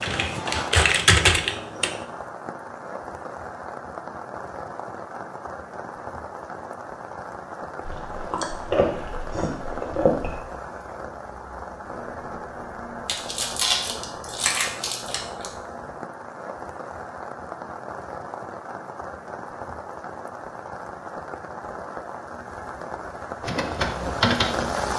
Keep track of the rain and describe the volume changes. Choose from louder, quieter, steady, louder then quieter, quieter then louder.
steady.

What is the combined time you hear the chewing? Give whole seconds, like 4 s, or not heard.
5 s.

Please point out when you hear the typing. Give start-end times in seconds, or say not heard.
0.0-2.0, 23.4-24.9.